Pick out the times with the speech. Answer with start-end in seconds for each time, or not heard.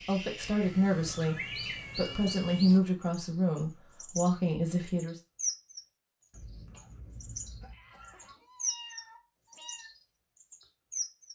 0.0-5.2.